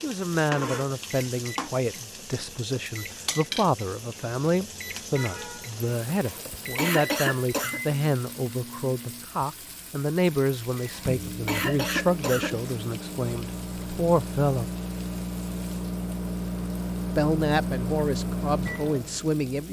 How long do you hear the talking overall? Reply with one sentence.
You can hear the talking for 17 seconds altogether.